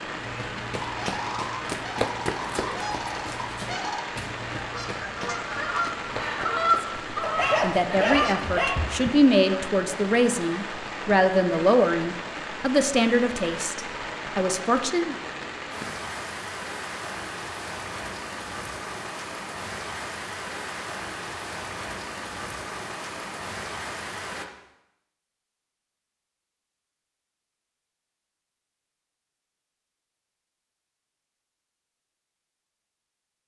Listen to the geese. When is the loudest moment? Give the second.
7 s.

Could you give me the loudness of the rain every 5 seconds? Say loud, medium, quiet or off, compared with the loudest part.
loud, loud, loud, loud, loud, off, off.